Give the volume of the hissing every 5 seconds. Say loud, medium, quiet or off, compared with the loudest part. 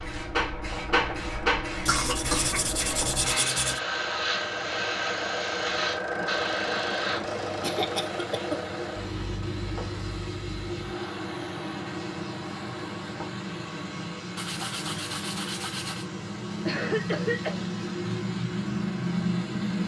loud, loud, medium, loud.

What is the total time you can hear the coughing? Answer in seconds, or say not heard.
4 s.